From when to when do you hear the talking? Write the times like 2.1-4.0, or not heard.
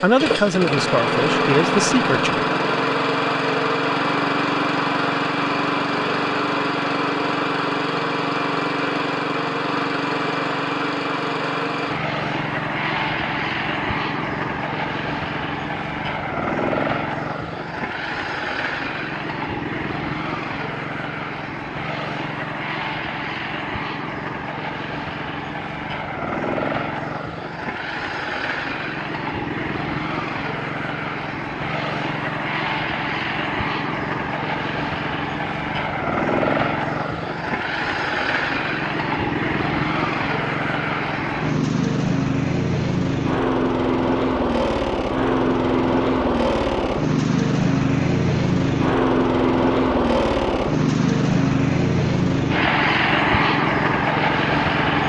0.0-2.5.